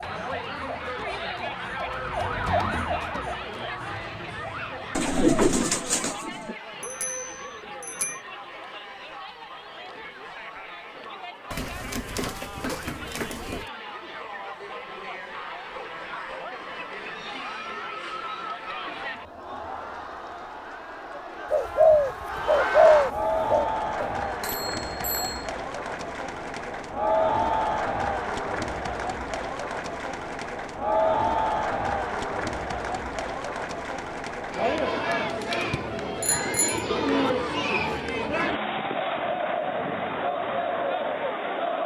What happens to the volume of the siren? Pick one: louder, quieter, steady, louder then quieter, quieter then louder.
louder then quieter.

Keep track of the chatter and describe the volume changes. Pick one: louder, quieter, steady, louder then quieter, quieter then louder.
louder.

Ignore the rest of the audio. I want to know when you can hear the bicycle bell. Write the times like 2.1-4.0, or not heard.
6.8-8.2, 24.2-25.5, 36.2-37.3.